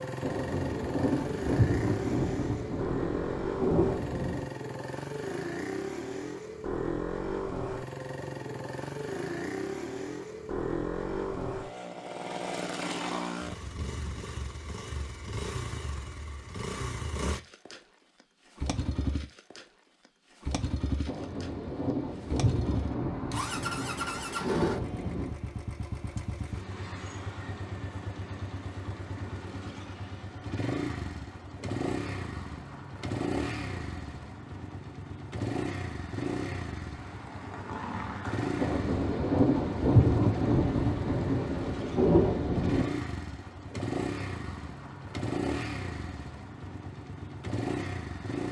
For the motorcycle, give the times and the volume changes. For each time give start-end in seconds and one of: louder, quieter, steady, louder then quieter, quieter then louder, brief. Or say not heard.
0.0-48.4 steady.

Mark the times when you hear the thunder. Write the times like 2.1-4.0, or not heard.
0.2-4.5, 21.1-25.4, 38.5-42.9.